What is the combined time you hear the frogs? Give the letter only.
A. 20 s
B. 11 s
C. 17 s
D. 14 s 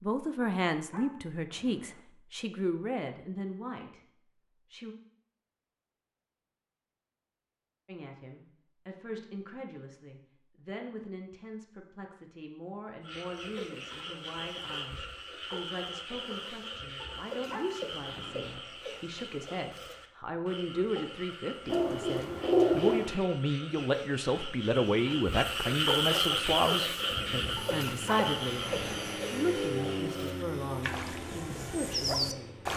A.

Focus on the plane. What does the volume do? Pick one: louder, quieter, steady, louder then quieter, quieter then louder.
louder then quieter.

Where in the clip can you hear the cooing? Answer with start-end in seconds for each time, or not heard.
21.6-23.1.